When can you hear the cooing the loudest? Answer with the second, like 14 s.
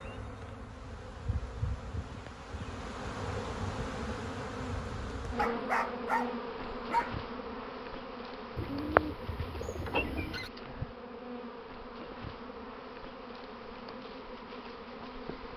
9 s.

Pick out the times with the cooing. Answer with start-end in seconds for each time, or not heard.
8.6-10.5.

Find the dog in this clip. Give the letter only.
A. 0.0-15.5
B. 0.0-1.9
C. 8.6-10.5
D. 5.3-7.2
D.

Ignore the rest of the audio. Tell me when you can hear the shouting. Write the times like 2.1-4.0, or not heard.
not heard.